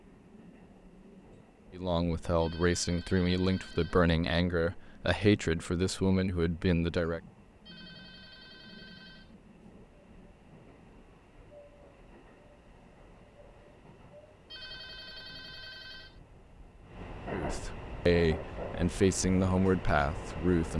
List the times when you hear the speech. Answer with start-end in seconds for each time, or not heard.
1.8-7.2, 17.3-20.7.